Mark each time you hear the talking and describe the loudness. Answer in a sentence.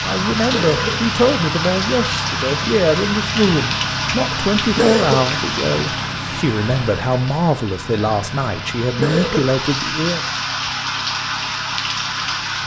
You can hear the talking from 0.0 to 10.2 s, at a steady volume.